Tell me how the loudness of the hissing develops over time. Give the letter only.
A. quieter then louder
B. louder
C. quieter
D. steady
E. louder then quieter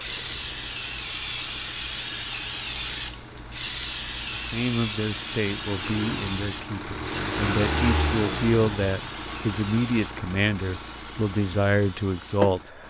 C.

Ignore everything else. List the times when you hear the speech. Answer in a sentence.
The speech can be heard from 4.3 to 12.7 s.